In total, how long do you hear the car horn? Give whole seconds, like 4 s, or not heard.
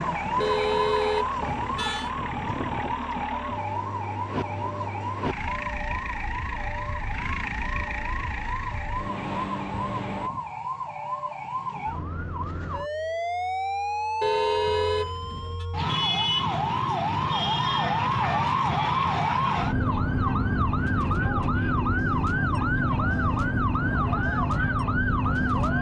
3 s.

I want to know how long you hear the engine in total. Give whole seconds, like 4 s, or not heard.
10 s.